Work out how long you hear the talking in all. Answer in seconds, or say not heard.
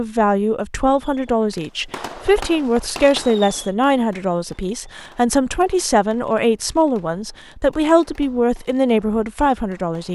10 s.